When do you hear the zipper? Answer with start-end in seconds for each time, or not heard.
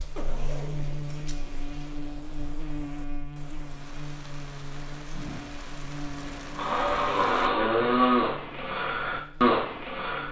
0.1-1.6.